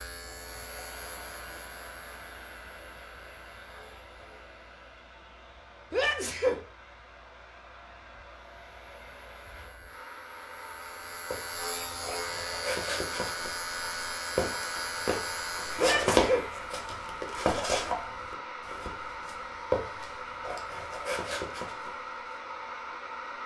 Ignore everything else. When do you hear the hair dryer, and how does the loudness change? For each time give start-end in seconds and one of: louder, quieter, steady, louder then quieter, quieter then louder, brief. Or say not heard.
0.0-23.4 louder.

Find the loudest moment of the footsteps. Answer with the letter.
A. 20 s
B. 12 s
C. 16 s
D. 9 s
C.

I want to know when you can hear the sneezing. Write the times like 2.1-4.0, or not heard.
5.9-6.6, 15.8-16.4.